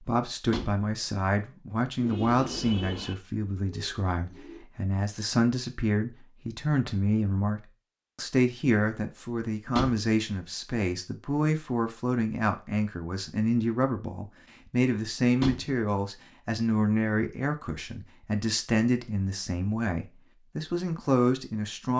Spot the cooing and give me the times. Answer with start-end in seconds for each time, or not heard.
1.9-4.7.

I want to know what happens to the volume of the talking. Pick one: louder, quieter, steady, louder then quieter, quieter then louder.
steady.